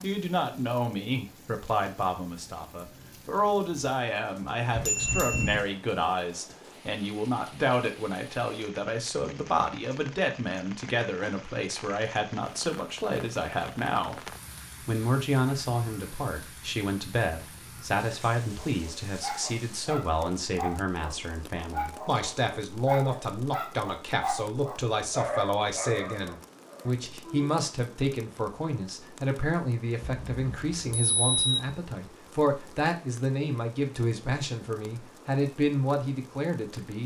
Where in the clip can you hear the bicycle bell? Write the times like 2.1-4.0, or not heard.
4.7-5.7, 30.0-31.6.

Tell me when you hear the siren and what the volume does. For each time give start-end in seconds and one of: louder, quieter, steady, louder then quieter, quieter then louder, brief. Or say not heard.
not heard.